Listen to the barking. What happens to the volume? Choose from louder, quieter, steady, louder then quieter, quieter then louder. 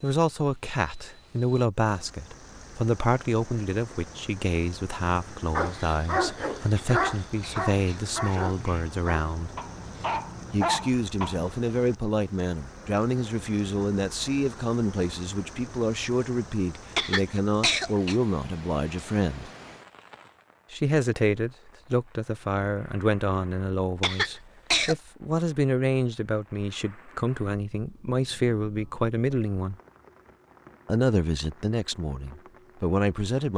quieter then louder.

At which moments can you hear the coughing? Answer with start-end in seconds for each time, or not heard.
6.8-8.9, 16.9-18.1, 24.0-24.9.